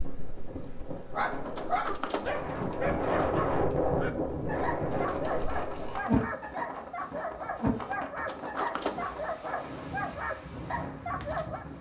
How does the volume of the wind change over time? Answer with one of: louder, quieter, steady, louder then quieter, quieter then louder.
louder then quieter.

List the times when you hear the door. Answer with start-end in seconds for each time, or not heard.
1.4-2.8, 8.2-9.2.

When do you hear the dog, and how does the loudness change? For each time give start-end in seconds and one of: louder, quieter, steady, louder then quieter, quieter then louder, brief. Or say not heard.
0.9-11.7 steady.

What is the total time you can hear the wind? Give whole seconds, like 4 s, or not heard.
12 s.